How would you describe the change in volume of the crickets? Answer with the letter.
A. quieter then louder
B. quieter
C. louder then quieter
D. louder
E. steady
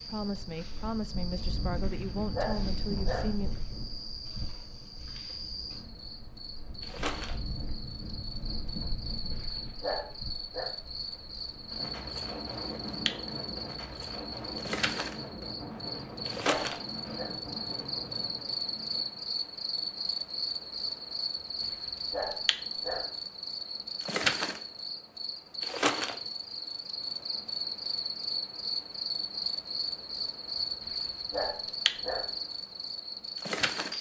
D.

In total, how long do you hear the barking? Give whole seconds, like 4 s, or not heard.
8 s.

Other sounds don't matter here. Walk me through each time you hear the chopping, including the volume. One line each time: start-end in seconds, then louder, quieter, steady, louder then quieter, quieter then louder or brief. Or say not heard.
not heard.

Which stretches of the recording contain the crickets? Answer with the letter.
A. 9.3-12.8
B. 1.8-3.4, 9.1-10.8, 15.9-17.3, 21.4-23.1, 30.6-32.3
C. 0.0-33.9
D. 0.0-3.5
C.